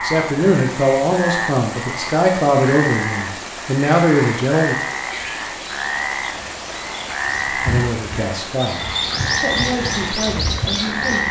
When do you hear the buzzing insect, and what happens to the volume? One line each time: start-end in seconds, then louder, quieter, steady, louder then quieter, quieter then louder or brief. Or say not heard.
not heard.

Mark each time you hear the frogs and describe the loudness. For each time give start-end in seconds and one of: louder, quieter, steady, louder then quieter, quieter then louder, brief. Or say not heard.
0.0-11.2 steady.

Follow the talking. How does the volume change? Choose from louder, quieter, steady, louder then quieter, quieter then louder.
quieter.